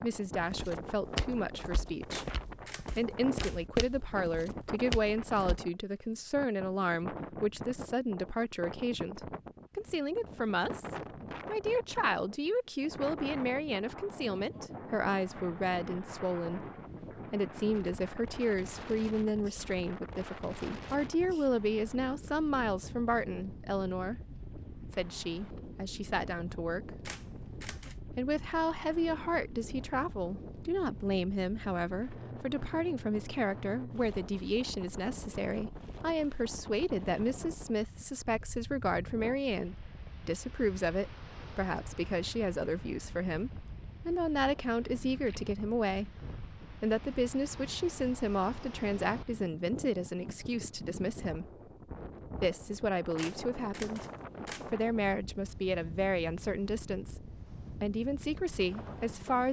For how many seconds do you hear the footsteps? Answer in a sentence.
The footsteps can be heard for 5 seconds in total.